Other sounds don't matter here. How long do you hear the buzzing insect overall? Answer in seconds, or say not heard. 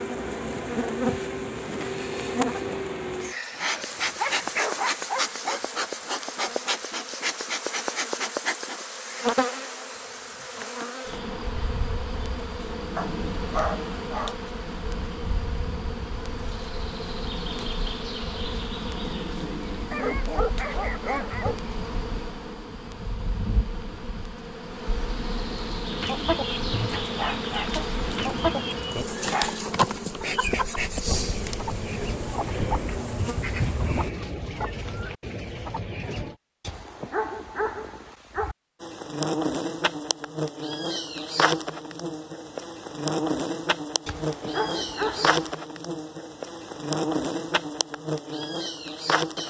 45 s.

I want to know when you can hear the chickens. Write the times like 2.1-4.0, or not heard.
25.9-36.4.